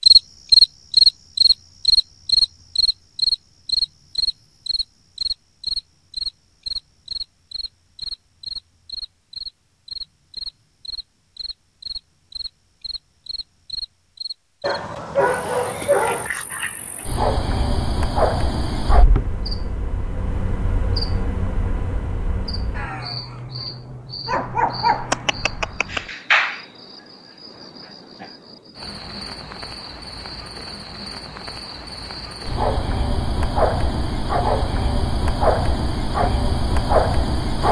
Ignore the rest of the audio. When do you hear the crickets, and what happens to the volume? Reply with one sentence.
The crickets can be heard from 0.0 to 37.6 s, getting quieter then louder.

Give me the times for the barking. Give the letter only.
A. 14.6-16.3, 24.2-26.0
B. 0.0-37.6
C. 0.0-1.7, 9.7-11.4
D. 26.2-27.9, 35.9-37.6
A.